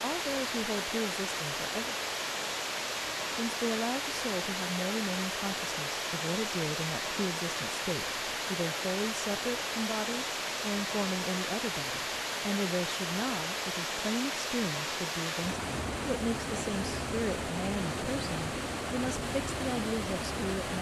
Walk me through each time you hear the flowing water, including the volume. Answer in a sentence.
The flowing water can be heard from 0.0 to 20.7 s, at a steady volume.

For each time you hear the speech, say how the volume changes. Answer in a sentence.
You can hear the speech briefly from 0.0 to 1.9 s; and from 3.3 to 20.7 s, at a steady volume.